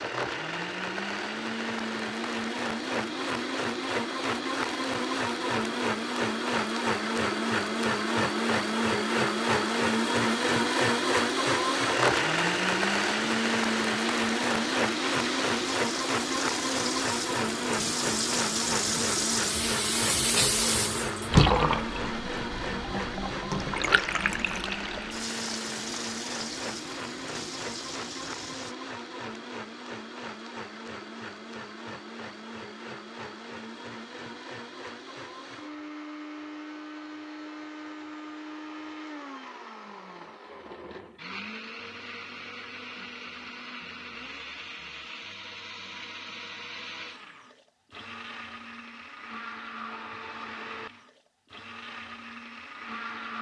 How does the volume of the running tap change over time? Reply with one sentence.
The volume of the running tap goes up, then down.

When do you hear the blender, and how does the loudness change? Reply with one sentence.
The blender can be heard from 0.0 to 53.3 s, getting quieter.